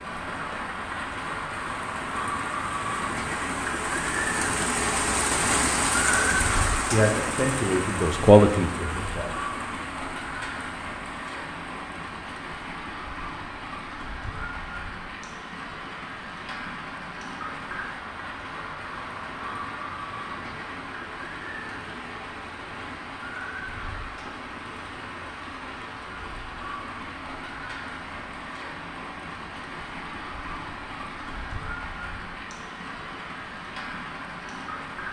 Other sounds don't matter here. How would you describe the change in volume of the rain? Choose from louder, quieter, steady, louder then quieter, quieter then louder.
quieter.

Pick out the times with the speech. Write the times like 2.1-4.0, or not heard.
6.1-9.3.